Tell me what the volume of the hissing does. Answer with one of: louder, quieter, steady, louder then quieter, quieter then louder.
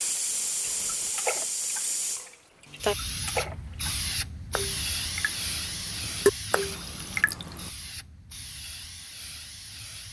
quieter.